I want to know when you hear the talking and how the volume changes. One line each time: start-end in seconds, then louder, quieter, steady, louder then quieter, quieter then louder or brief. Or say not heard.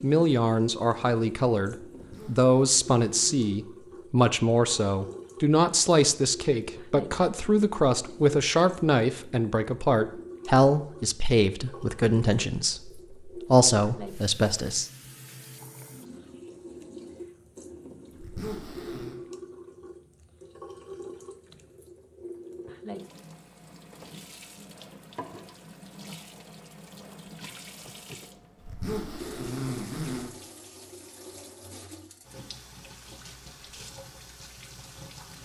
0.0-14.9 steady.